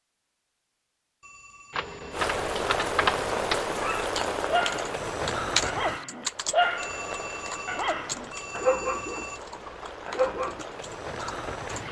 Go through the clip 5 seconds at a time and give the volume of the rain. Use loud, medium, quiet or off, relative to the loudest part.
loud, medium, medium.